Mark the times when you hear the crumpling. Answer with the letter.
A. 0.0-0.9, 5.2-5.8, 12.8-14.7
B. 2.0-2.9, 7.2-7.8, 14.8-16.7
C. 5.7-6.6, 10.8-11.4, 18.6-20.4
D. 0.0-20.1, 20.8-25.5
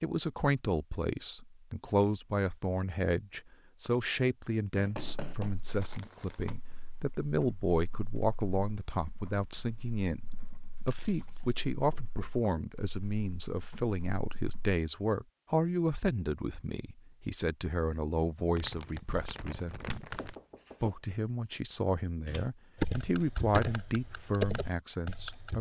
C.